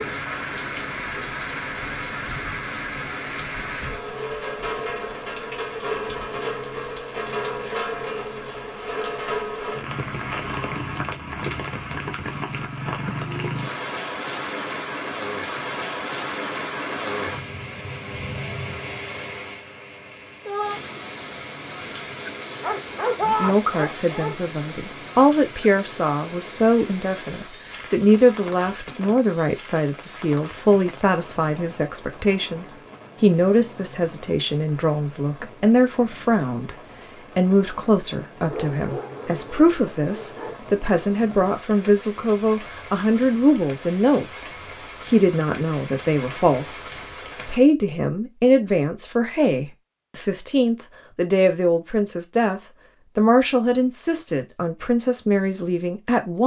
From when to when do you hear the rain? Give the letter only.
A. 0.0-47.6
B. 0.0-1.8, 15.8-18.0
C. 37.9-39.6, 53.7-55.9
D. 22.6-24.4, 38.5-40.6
A.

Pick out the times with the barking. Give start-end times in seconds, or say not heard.
22.6-24.4, 38.5-40.6.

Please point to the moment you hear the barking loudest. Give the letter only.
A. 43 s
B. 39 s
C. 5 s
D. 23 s
D.